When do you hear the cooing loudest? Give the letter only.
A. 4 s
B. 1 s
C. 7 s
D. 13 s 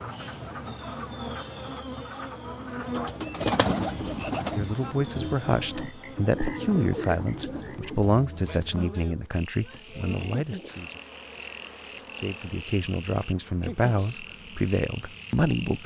A.